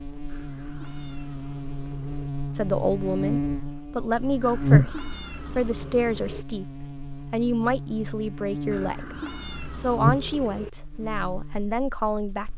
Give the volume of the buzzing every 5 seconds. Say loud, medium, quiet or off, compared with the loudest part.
loud, medium, loud.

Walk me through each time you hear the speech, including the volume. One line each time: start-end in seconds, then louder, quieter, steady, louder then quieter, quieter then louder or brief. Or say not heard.
2.5-12.5 steady.